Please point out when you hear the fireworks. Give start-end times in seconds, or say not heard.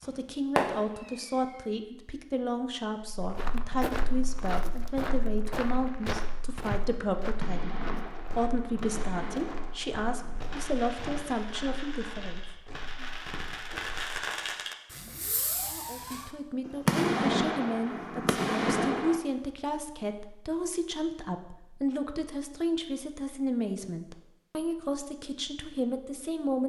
0.0-1.6, 7.4-19.2.